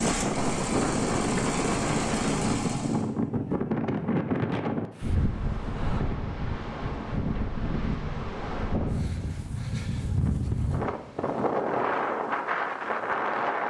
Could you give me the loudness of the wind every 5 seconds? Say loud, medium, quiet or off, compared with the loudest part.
loud, medium, loud.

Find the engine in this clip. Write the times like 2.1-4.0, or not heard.
0.0-3.0.